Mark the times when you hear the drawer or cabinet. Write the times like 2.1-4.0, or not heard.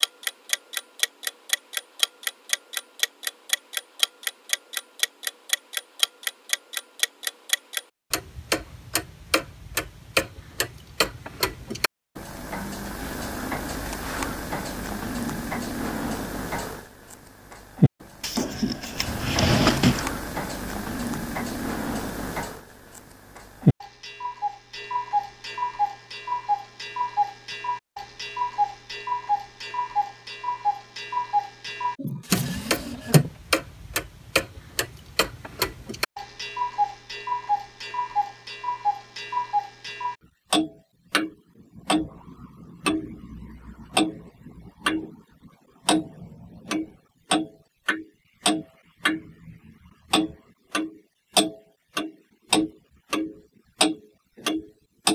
18.2-20.1, 31.9-33.3.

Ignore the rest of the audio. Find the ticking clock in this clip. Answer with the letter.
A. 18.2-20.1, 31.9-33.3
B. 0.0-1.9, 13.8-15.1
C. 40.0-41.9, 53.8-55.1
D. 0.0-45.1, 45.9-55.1
D.